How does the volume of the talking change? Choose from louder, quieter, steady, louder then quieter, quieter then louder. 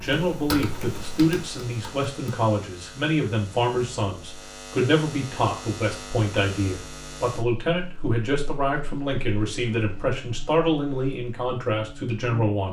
steady.